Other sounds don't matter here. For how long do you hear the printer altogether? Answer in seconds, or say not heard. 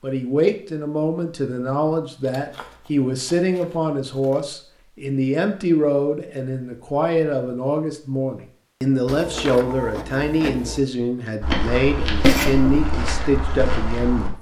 2 s.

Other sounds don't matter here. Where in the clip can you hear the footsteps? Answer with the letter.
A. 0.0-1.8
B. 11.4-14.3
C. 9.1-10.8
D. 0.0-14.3
B.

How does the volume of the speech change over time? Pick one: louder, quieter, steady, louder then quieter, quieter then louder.
steady.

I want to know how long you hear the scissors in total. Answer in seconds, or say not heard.
3 s.